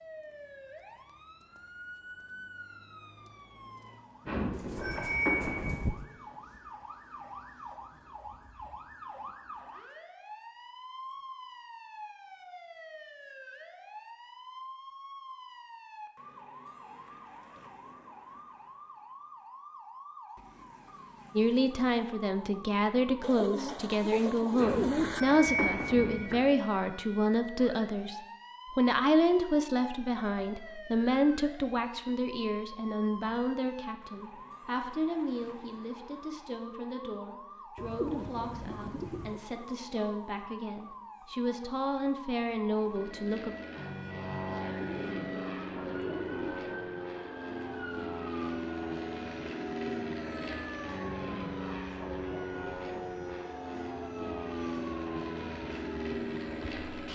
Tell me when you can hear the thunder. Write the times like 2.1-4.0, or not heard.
not heard.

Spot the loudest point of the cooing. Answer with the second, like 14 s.
25 s.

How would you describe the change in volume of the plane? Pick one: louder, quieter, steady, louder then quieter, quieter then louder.
steady.